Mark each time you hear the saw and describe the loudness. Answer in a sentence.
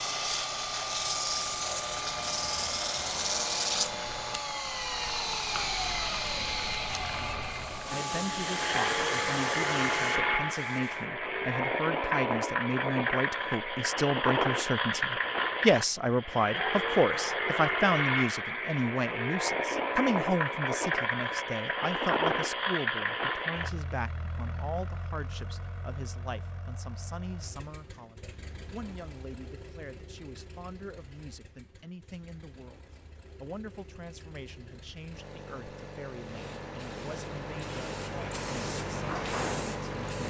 The saw can't be heard in this clip.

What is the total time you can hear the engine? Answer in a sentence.
You can hear the engine for 40 seconds altogether.